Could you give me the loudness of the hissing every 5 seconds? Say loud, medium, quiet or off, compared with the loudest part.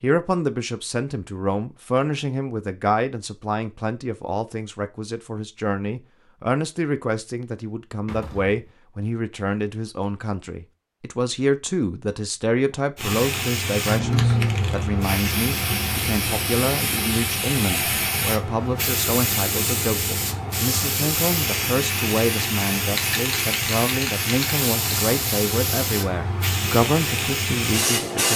off, off, loud, loud, loud, loud.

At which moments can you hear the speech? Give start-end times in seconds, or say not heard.
0.0-28.3.